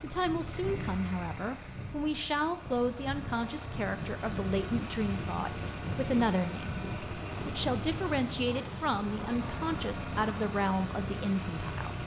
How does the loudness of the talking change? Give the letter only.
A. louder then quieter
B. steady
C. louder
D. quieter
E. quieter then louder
B.